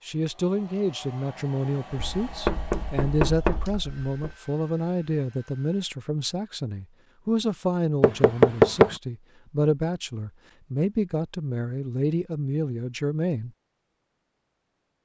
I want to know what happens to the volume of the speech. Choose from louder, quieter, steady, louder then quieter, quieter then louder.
steady.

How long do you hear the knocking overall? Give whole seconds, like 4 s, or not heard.
3 s.